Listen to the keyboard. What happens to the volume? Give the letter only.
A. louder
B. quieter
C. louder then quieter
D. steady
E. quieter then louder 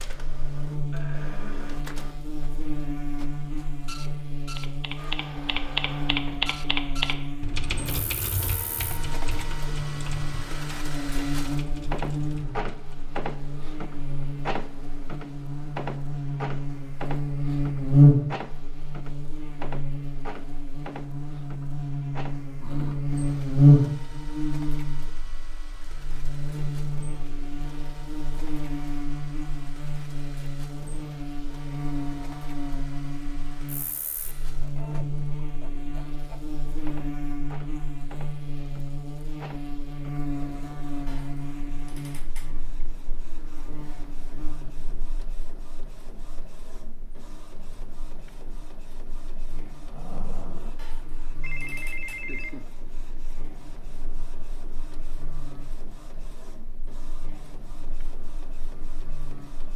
B.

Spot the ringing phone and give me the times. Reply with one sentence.
The ringing phone can be heard from 51.4 to 52.7 s.